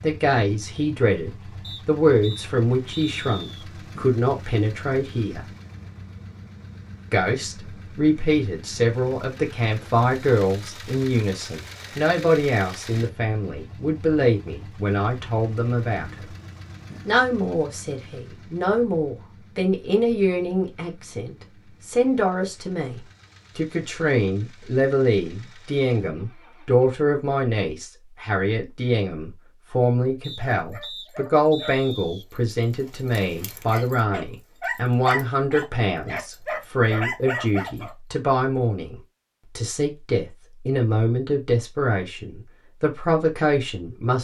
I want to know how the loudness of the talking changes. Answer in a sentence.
The volume of the talking stays about the same.